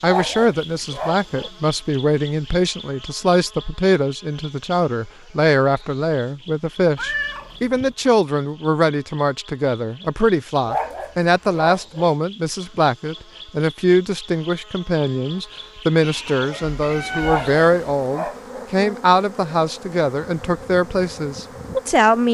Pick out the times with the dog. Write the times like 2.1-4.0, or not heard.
0.1-1.5, 10.7-12.1, 17.2-18.6.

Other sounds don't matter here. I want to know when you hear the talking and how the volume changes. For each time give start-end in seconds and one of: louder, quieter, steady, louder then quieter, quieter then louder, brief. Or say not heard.
0.0-22.2 steady.